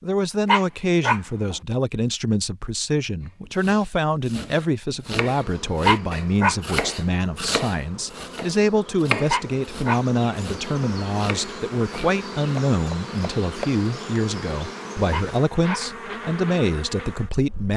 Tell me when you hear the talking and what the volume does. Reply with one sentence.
The talking can be heard from 0.0 to 17.7 s, at a steady volume.